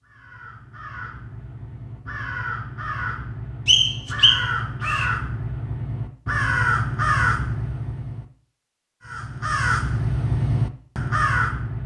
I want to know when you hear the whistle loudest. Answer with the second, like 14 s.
4 s.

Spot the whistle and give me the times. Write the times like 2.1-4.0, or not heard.
3.6-5.1.